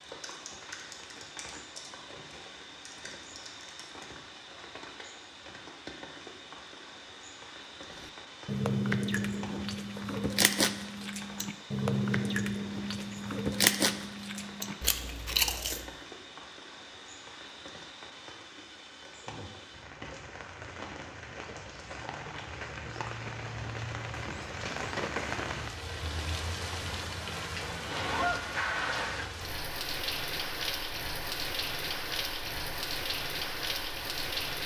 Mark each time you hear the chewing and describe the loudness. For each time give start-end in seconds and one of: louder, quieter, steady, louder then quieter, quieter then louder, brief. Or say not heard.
8.0-15.9 steady.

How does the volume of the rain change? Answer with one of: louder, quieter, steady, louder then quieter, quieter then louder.
louder.